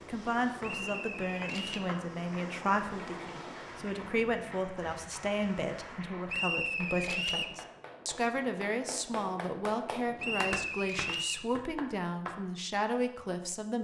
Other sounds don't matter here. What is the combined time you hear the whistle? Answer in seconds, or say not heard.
4 s.